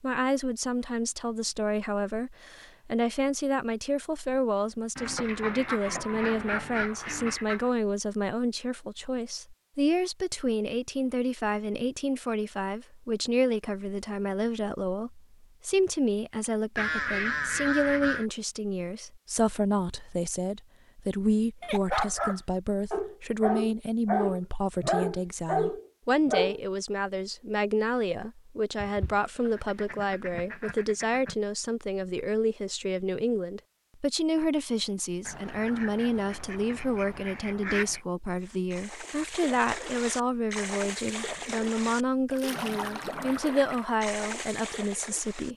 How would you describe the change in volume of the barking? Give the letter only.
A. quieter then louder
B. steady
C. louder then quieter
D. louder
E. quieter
B.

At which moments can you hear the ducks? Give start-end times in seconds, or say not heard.
5.0-7.7, 16.8-18.2, 28.8-31.4, 35.2-38.0.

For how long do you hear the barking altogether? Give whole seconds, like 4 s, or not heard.
5 s.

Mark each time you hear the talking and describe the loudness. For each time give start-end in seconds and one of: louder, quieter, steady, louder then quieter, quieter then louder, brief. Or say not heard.
0.0-45.5 steady.